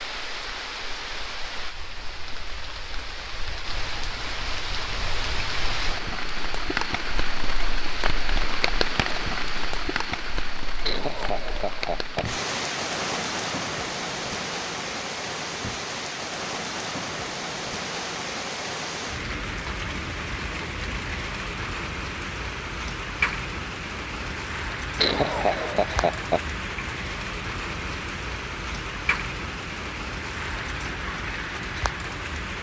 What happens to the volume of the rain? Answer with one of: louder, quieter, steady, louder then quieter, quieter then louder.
steady.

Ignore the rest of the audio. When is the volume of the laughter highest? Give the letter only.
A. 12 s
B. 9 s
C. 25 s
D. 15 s
C.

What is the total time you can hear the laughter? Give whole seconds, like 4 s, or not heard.
3 s.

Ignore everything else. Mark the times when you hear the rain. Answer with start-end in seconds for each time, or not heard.
0.0-32.5.